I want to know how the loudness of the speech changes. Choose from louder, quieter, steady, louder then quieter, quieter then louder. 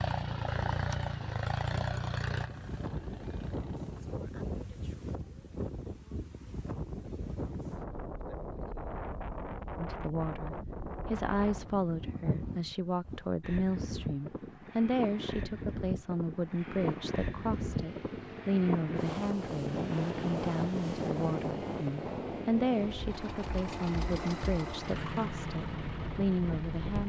steady.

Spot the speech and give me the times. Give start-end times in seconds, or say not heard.
9.8-27.0.